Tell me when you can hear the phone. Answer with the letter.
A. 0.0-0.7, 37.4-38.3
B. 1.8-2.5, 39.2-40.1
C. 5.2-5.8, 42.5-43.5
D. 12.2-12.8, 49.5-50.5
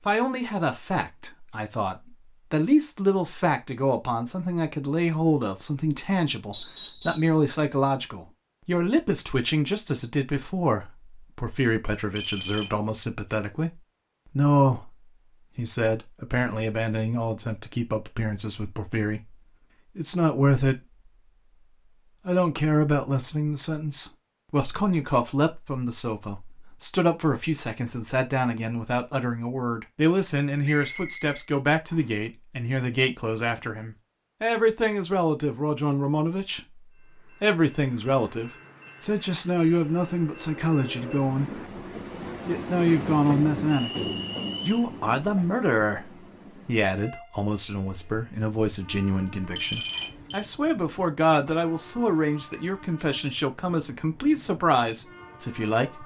D.